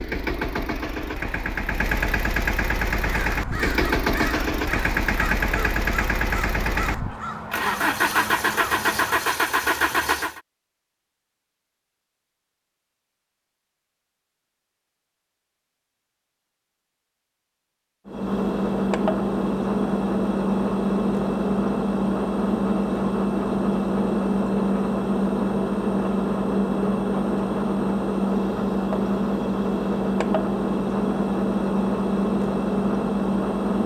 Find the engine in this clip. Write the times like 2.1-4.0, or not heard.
0.0-10.4, 18.1-33.8.